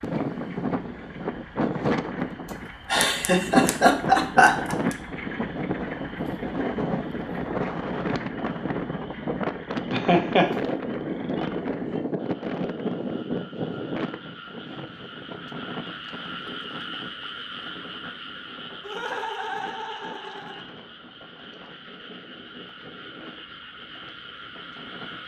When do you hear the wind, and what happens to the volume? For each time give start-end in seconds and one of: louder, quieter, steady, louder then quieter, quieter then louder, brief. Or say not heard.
0.0-25.2 quieter.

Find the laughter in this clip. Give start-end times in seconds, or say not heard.
2.9-5.0, 9.9-10.5, 18.8-20.6.